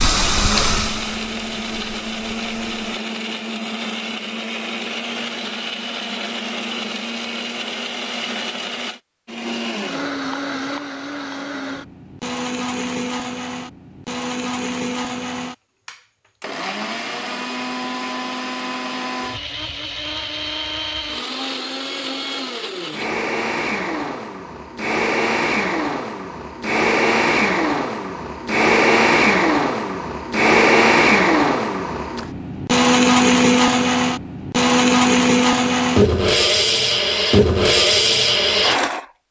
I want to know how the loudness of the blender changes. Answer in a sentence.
The loudness of the blender goes up.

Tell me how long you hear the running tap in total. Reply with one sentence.
You can hear the running tap for 3 seconds altogether.